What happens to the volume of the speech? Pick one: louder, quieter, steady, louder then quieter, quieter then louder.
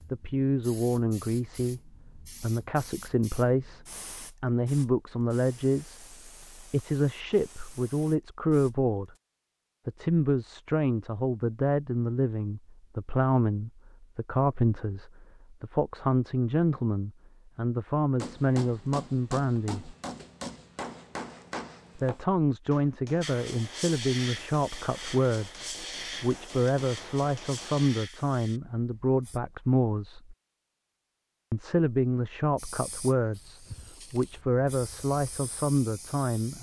steady.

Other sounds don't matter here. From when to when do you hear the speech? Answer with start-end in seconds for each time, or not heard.
0.1-9.1, 9.8-19.9, 21.9-30.4, 31.5-36.5.